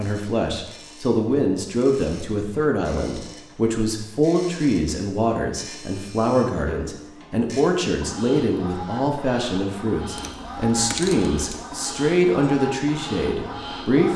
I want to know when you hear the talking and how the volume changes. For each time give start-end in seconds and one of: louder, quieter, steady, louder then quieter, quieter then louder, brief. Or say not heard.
0.0-14.1 steady.